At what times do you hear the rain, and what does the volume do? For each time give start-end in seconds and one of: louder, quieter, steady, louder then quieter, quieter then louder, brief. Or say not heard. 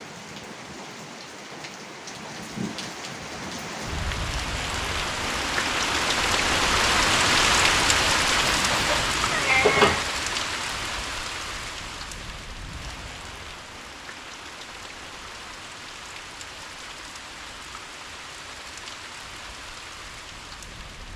0.0-21.1 louder then quieter.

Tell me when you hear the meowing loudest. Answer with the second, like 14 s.
10 s.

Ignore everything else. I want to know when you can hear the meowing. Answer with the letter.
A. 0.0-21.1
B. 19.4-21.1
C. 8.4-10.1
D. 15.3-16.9
C.